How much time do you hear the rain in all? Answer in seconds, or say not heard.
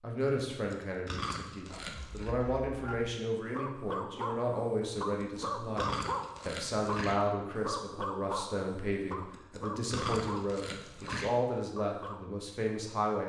not heard.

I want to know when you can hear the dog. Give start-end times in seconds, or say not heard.
1.6-12.2.